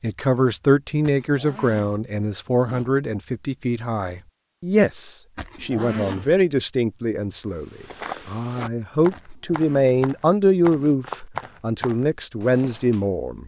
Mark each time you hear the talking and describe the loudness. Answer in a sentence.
The talking can be heard from 0.0 to 13.4 s, at a steady volume.